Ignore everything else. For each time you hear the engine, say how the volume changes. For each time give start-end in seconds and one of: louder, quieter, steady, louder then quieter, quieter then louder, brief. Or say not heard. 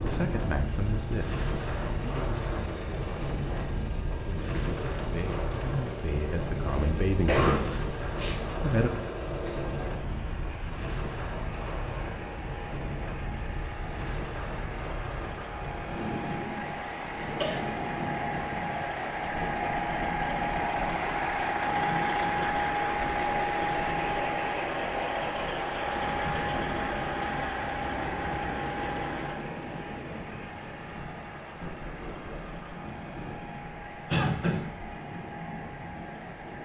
0.1-36.5 louder then quieter.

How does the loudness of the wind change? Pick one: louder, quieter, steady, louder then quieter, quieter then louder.
quieter.